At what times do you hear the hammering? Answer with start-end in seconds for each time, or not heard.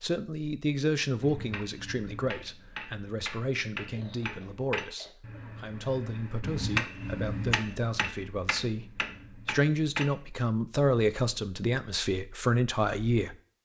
1.2-10.1.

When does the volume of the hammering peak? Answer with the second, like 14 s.
7 s.